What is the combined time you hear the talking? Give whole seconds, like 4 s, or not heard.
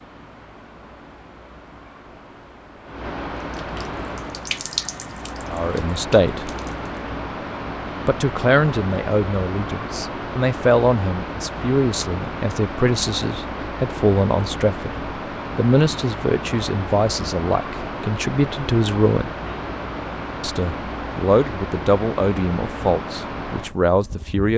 16 s.